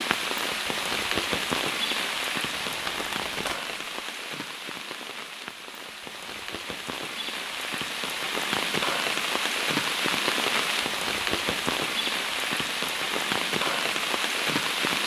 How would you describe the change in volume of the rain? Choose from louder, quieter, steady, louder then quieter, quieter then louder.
quieter then louder.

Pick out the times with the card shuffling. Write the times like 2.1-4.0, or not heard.
2.5-3.8.